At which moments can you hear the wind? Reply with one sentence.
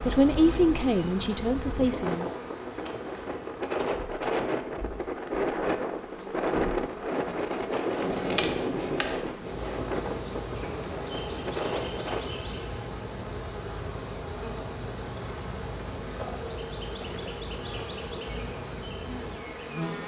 You can hear the wind from 0.0 to 12.2 s.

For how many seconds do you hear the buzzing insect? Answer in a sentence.
The buzzing insect can be heard for 20 seconds in total.